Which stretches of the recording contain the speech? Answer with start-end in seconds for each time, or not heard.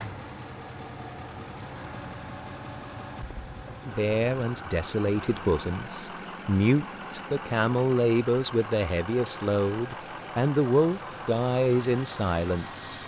3.9-13.0.